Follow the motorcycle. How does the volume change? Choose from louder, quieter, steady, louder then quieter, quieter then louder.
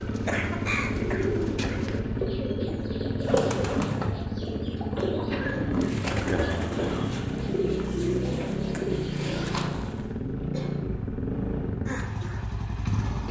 steady.